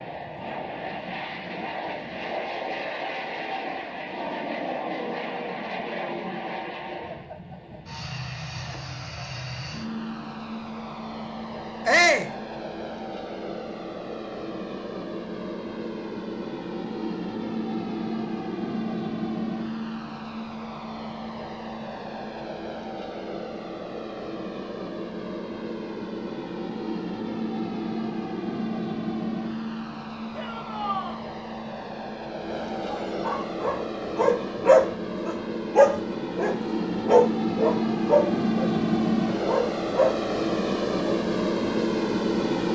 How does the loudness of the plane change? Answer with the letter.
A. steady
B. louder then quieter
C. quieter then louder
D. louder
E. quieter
D.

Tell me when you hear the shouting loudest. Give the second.
12 s.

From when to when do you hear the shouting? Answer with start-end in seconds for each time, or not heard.
11.8-12.3, 30.3-31.2.